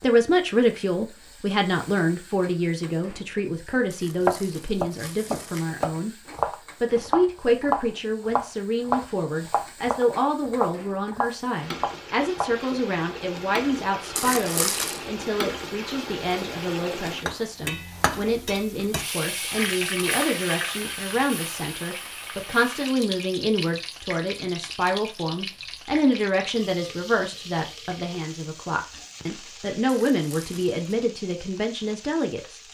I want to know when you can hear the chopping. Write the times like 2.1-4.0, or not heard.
4.2-12.6.